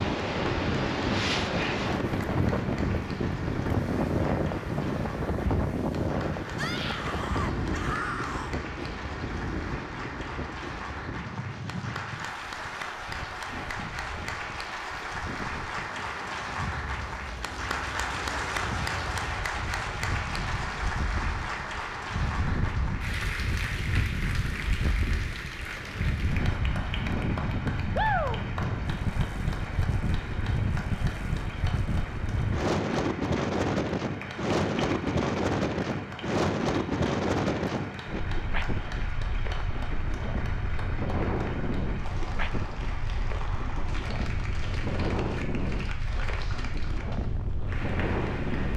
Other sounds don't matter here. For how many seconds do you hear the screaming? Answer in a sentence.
You can hear the screaming for 2 seconds altogether.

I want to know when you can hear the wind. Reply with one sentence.
You can hear the wind from 0.0 to 48.7 s.